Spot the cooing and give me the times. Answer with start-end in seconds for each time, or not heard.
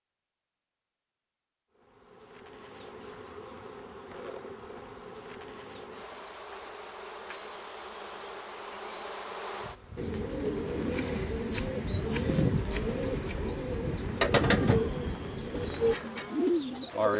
9.9-17.1.